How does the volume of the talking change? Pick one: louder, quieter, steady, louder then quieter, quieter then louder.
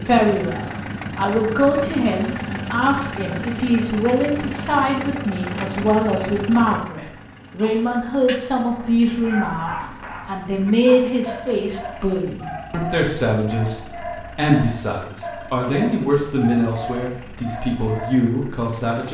steady.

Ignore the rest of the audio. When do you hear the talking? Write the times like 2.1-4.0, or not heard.
0.0-19.0.